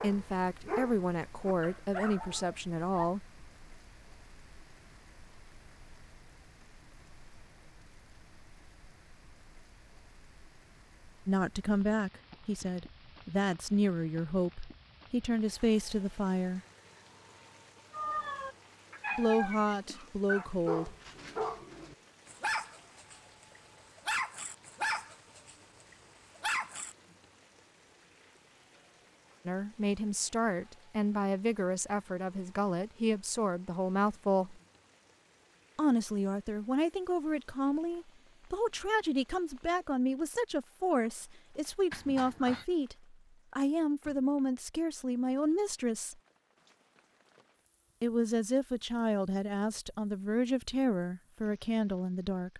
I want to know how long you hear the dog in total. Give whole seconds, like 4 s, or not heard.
12 s.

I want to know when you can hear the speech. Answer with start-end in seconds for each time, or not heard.
0.0-3.3, 11.2-16.6, 19.1-20.9, 29.4-34.6, 35.8-46.1, 48.0-52.5.